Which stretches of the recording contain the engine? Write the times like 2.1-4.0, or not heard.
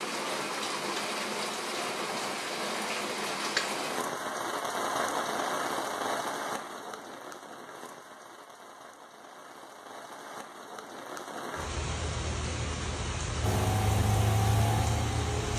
13.4-15.5.